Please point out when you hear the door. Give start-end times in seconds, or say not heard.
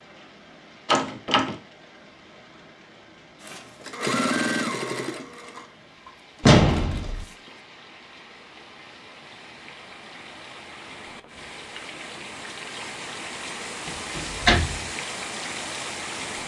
0.8-1.6, 6.4-7.2, 14.2-14.8.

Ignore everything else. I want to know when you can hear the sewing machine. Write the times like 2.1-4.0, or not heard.
3.4-7.6.